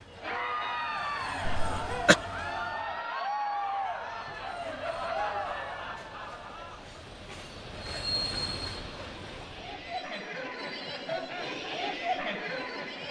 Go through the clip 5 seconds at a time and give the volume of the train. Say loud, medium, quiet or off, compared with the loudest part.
medium, loud, medium.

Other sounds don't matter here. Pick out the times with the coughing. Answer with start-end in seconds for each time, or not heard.
1.4-2.2.